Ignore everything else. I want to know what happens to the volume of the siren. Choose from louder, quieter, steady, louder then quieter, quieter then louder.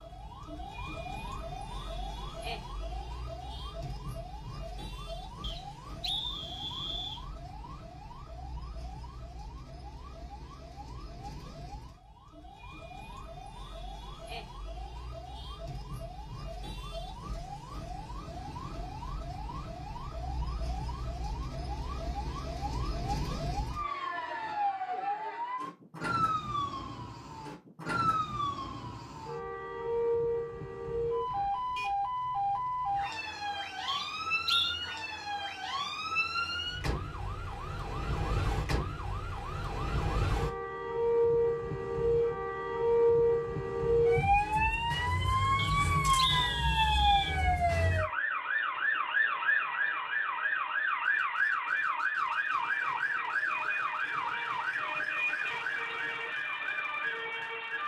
louder.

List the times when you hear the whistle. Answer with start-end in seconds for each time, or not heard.
5.4-7.2, 33.9-34.8, 45.5-47.4.